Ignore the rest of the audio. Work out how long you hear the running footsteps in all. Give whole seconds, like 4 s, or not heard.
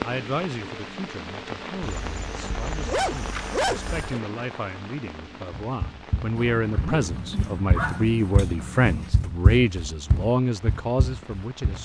6 s.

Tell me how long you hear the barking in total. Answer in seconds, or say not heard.
5 s.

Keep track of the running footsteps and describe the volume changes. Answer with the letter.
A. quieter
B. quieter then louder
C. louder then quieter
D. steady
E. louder
C.